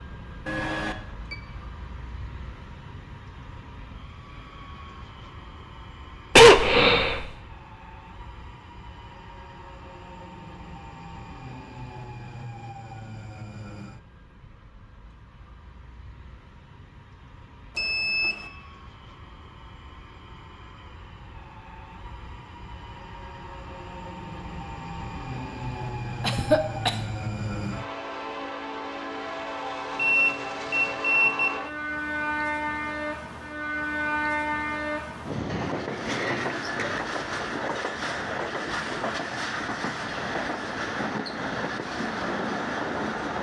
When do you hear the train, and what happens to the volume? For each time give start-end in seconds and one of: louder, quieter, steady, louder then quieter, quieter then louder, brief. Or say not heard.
0.0-43.3 louder.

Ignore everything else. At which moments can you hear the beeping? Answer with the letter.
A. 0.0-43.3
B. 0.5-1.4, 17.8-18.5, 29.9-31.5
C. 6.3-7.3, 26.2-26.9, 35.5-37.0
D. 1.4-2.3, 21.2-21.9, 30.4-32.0
B.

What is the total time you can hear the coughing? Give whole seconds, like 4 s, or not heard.
3 s.